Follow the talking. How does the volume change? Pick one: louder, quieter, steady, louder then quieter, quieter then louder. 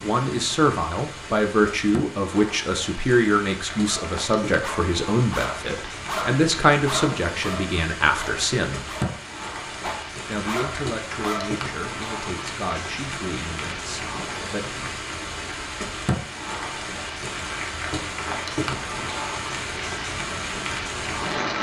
quieter.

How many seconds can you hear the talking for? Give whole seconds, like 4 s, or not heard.
13 s.